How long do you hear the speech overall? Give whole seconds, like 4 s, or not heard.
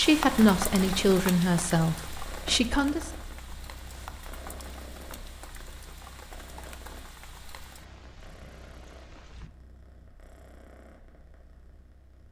3 s.